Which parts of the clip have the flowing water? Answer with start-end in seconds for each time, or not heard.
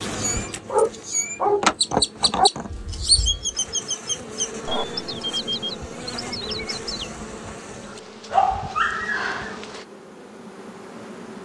not heard.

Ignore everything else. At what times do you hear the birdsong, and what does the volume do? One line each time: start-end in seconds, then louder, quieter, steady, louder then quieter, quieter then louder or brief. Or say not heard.
0.0-7.1 louder then quieter.